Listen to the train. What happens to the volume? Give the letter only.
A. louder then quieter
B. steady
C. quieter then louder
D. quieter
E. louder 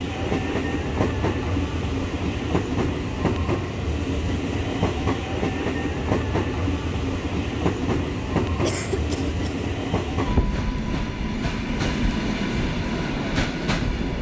B.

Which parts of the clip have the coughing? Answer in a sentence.
The coughing can be heard from 8.7 to 9.7 s.